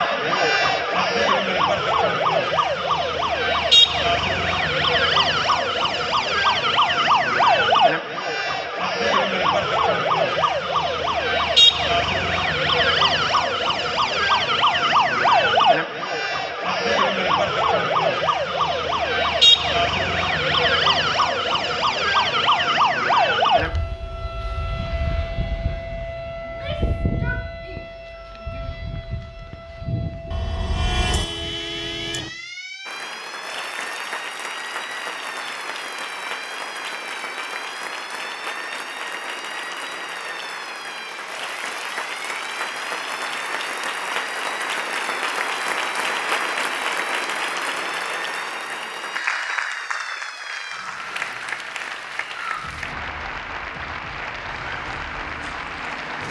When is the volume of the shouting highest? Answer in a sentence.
The volume of the shouting peaks at 27 seconds.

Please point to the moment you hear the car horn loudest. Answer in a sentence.
The loudest moment of the car horn is at 31 seconds.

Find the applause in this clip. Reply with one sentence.
You can hear the applause from 32.9 to 56.2 s.